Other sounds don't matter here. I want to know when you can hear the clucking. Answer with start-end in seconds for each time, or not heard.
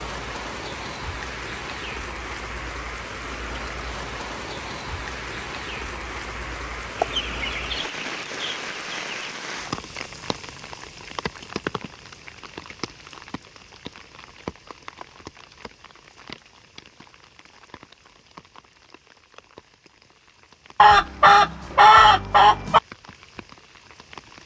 7.0-9.3, 20.8-22.8.